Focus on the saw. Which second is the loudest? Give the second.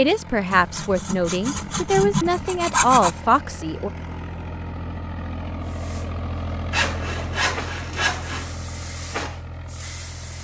3 s.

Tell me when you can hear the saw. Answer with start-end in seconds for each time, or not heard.
0.5-3.1, 6.7-8.6.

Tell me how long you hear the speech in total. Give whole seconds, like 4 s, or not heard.
4 s.